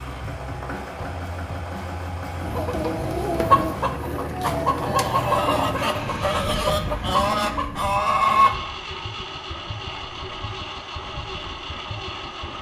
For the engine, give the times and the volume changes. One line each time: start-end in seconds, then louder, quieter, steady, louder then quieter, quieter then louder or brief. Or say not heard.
0.0-12.5 steady.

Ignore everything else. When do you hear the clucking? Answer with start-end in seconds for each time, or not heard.
2.4-8.6.